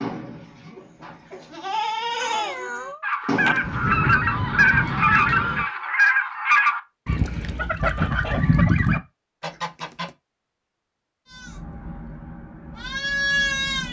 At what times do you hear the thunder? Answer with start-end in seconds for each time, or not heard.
3.6-5.7.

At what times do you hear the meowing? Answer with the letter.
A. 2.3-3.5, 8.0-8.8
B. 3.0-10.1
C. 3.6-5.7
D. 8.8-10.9
A.